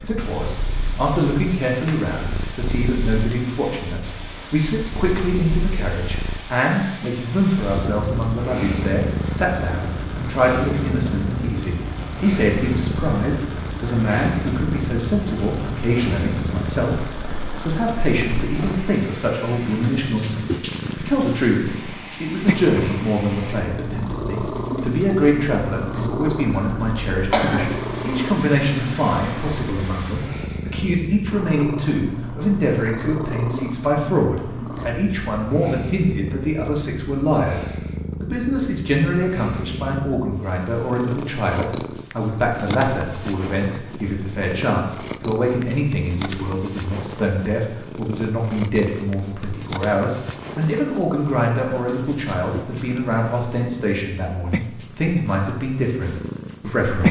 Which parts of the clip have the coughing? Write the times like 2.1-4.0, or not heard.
26.5-27.6.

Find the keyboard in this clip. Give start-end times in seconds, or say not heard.
not heard.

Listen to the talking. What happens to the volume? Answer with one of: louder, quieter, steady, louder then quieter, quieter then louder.
steady.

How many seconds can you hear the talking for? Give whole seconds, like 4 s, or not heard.
57 s.